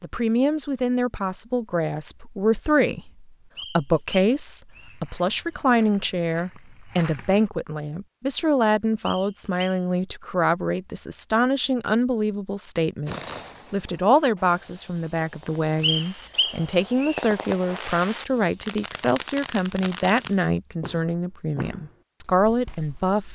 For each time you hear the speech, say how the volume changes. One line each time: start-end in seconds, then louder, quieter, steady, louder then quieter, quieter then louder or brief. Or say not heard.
0.0-23.2 steady.